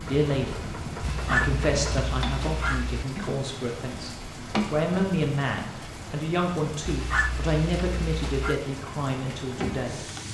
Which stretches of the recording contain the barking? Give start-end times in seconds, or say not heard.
1.0-3.0, 6.8-8.6.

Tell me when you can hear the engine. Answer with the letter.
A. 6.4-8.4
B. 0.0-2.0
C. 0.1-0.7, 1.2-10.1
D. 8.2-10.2
B.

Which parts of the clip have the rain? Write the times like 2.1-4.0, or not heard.
0.0-10.2.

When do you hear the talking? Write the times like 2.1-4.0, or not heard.
0.1-0.7, 1.2-10.1.